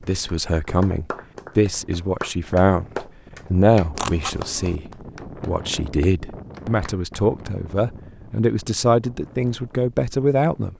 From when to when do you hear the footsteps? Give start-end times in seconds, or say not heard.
not heard.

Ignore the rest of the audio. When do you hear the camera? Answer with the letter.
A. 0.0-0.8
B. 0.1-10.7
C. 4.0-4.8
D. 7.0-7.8
C.